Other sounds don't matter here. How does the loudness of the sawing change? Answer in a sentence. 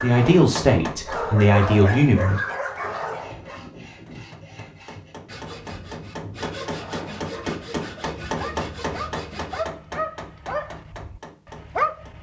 The loudness of the sawing goes up.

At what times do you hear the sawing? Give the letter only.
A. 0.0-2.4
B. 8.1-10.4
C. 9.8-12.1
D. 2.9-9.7
D.